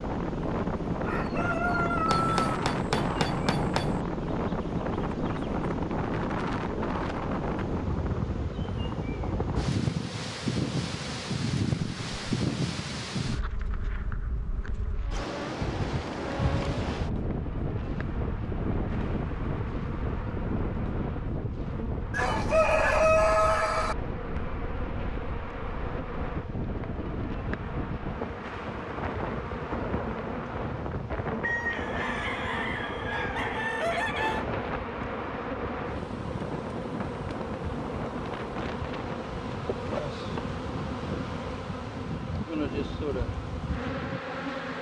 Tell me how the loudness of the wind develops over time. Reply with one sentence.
The loudness of the wind goes down.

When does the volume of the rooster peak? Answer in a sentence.
The volume of the rooster peaks at 23 seconds.